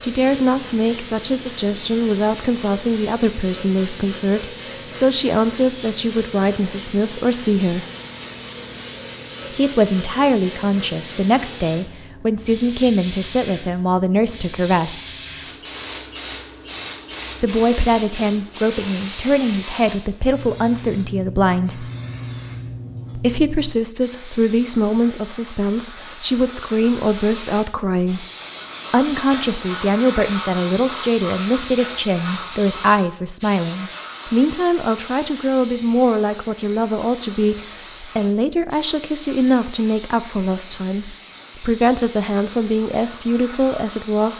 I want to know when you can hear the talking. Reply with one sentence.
The talking can be heard from 0.0 to 7.8 s, from 9.5 to 15.0 s, from 17.4 to 21.9 s, from 23.1 to 28.2 s and from 28.9 to 44.3 s.